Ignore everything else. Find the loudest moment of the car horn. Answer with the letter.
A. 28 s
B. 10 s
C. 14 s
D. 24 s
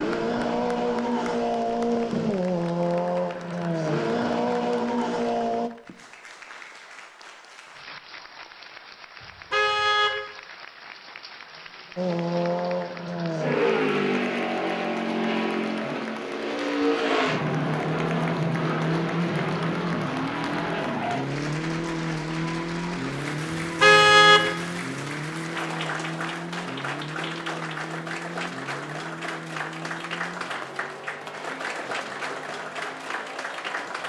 D.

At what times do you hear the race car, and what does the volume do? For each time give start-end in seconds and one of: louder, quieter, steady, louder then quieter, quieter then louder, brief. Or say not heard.
0.0-5.7 steady
11.9-34.0 quieter.